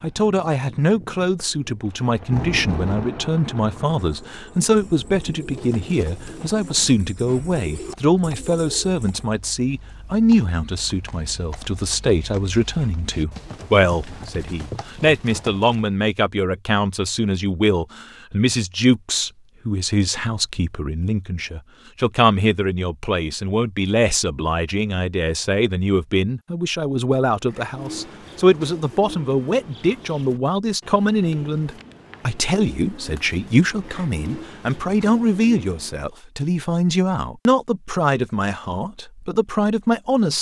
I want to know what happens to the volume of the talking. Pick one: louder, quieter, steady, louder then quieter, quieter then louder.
steady.